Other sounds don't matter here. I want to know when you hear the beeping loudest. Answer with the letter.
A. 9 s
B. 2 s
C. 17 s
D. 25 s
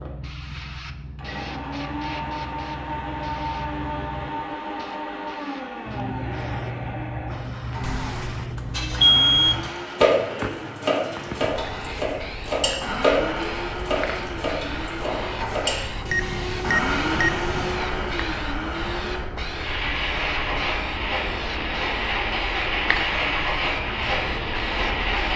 A.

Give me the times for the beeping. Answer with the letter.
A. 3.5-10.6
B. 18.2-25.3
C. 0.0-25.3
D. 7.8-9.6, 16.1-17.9
D.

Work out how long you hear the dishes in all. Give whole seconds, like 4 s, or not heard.
7 s.